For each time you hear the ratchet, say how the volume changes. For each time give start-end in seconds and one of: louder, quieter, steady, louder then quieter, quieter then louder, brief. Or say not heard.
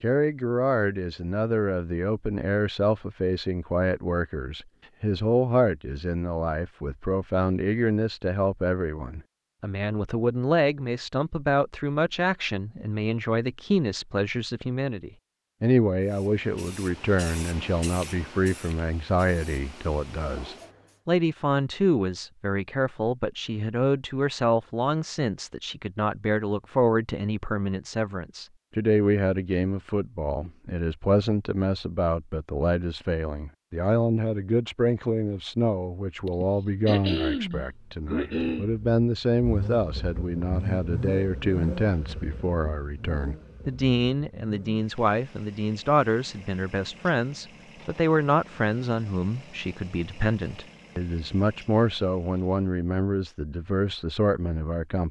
not heard.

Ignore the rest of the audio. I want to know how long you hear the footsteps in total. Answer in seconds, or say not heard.
not heard.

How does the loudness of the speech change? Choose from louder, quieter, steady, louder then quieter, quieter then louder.
steady.